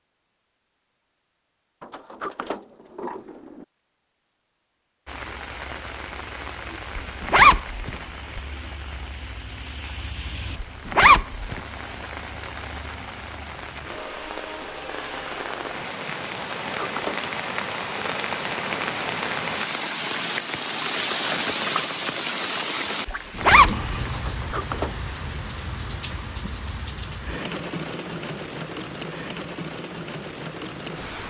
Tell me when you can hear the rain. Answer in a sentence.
You can hear the rain from 5.0 to 31.2 s.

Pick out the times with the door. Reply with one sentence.
The door can be heard from 1.8 to 3.6 s, from 16.6 to 17.3 s and from 24.1 to 25.1 s.